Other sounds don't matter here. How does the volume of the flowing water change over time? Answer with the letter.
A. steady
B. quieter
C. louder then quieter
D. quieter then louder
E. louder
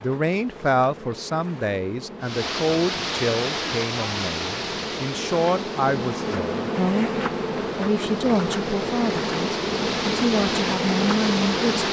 D.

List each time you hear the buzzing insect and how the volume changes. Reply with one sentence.
You can hear the buzzing insect from 0.0 to 11.8 s, getting louder.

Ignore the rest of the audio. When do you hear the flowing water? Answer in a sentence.
You can hear the flowing water from 2.2 to 11.8 s.